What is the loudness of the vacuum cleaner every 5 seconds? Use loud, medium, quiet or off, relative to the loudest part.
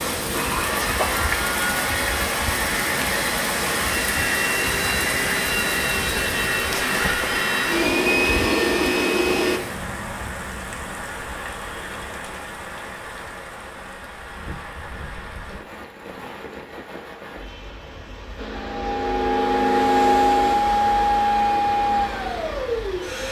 medium, loud, off, loud, loud.